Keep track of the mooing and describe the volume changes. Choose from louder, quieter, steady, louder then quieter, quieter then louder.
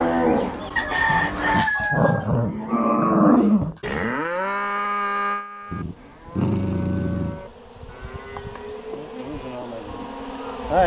louder then quieter.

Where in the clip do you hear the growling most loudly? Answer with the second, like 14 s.
3 s.